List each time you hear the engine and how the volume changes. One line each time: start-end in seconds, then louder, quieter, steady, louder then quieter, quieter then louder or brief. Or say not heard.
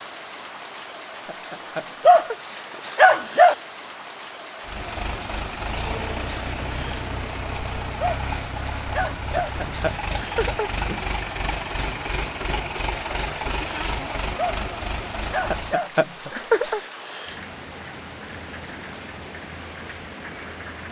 4.6-15.8 steady.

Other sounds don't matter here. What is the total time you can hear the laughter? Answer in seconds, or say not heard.
4 s.